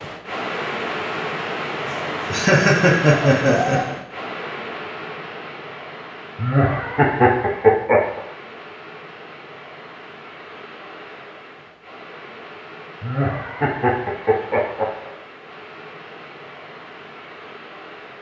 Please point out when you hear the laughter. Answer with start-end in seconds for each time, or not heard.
1.9-4.0, 6.3-8.2, 13.0-15.1.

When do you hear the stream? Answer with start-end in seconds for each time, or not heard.
0.0-18.1.